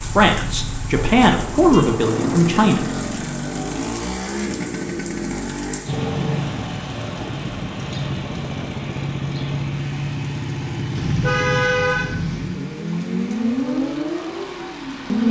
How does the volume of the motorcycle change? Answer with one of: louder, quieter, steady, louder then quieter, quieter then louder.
steady.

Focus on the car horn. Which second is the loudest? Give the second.
12 s.